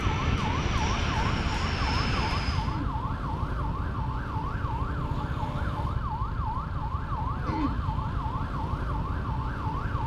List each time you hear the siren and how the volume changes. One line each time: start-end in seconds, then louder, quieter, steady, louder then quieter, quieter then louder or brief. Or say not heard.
0.0-10.0 steady.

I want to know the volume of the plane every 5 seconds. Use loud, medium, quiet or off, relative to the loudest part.
loud, off.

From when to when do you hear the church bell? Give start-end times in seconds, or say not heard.
not heard.